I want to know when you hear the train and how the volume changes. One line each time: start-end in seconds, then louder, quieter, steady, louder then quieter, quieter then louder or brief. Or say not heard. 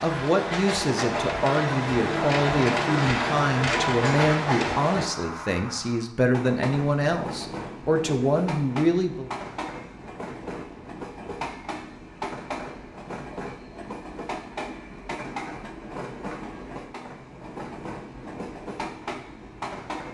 0.0-20.1 quieter.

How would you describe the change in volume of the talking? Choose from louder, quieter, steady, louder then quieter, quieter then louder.
steady.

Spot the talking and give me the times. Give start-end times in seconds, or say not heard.
0.0-9.3.